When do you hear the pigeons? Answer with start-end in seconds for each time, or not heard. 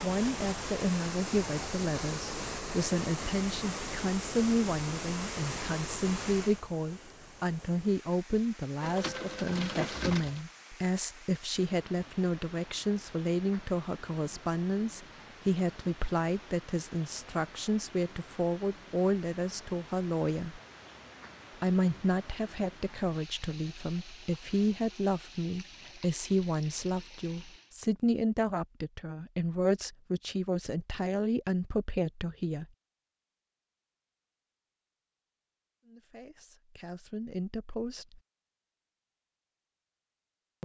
8.8-10.4.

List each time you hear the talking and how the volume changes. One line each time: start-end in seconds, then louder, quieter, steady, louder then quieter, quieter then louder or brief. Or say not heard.
0.0-20.6 steady
21.6-32.6 steady
35.9-38.2 brief.